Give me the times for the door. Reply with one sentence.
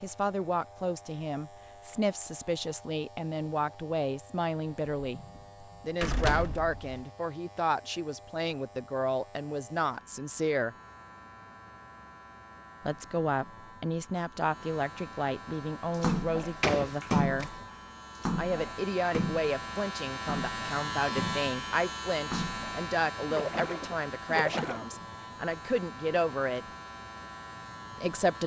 You can hear the door from 5.0 to 7.0 s and from 16.1 to 17.5 s.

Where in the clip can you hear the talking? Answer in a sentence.
The talking can be heard from 0.0 to 5.2 s, from 5.8 to 10.8 s, from 12.8 to 17.5 s, from 18.4 to 26.6 s and from 27.9 to 28.4 s.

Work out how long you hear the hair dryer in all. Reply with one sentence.
The hair dryer can't be heard in this clip.